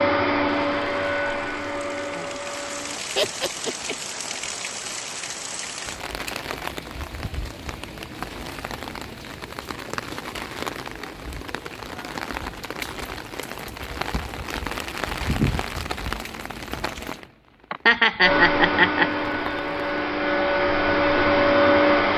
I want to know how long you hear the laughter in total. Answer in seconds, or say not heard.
2 s.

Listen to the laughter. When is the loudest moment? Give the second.
18 s.